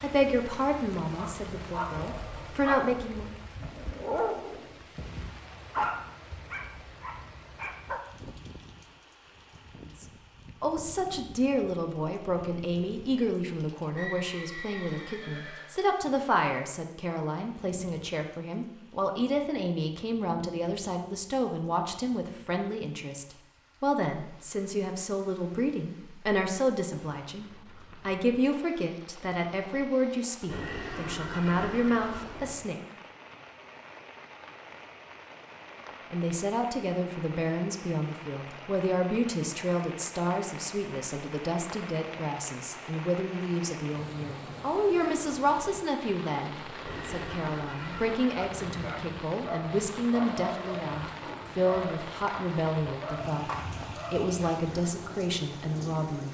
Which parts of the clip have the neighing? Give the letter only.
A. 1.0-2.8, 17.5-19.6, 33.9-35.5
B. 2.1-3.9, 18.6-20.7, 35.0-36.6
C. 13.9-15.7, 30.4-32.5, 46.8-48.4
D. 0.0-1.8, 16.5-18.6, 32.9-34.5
C.